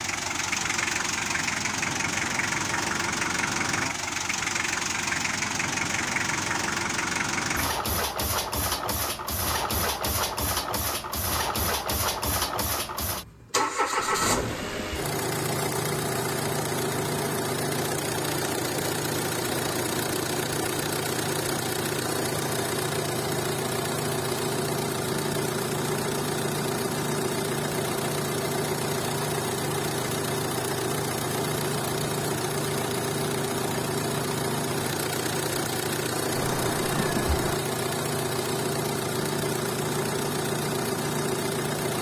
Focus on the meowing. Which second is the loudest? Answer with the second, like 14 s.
37 s.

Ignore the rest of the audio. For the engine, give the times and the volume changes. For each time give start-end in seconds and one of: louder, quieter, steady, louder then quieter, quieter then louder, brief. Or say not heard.
0.0-41.9 steady.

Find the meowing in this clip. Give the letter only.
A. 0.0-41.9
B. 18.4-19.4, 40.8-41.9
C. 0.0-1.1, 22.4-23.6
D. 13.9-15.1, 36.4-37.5
D.